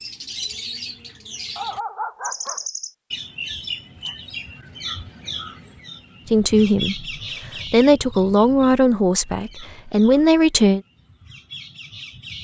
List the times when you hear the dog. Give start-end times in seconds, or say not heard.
1.6-2.6.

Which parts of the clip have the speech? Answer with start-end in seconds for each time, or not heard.
6.3-10.8.